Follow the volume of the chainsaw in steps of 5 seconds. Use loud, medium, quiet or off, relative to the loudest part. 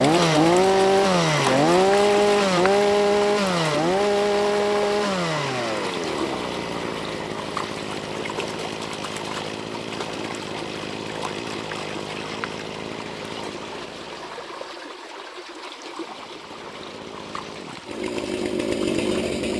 loud, medium, quiet, medium.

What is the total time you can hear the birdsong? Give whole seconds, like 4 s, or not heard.
not heard.